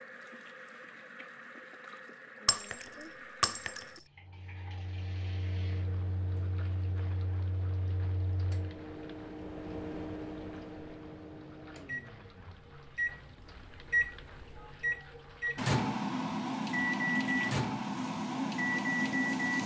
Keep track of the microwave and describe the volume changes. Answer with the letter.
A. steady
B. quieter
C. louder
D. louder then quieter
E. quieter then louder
C.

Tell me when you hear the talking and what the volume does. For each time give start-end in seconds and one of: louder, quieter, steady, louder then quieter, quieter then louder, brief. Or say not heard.
not heard.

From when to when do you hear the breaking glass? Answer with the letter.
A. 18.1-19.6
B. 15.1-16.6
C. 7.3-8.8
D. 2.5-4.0
D.